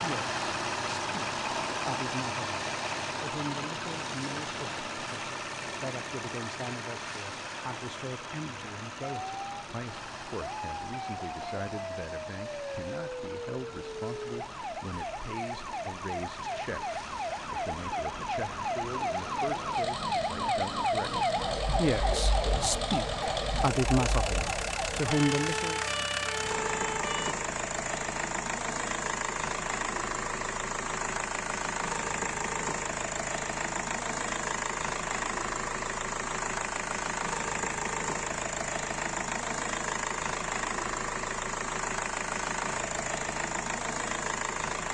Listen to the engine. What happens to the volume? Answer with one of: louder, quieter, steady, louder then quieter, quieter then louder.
quieter then louder.